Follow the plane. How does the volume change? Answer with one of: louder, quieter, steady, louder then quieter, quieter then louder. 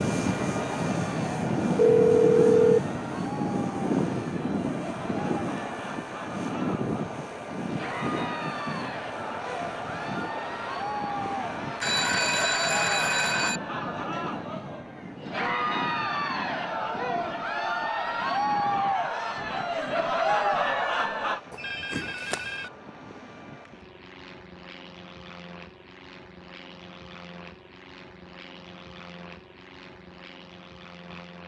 quieter.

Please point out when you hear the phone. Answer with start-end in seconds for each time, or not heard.
1.8-2.8, 11.8-13.6, 21.5-22.7.